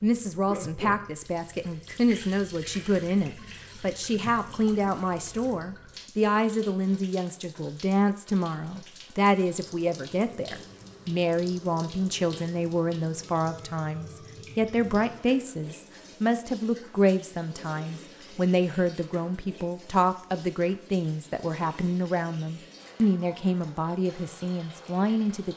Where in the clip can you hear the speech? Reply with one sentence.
You can hear the speech from 0.0 to 25.5 s.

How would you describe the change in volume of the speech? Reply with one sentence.
The loudness of the speech stays about the same.